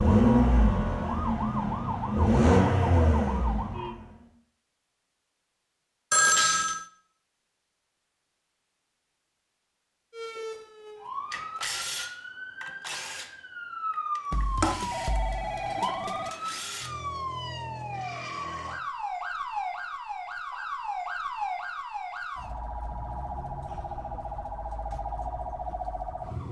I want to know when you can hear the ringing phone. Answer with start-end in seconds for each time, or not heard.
6.1-6.8, 14.3-16.3.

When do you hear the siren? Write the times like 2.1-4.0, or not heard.
0.0-4.0, 10.1-26.4.